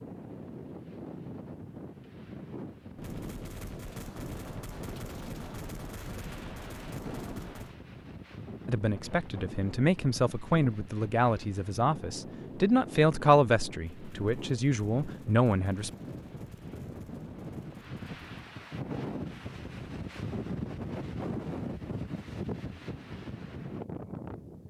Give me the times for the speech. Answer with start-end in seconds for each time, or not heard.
8.7-15.9.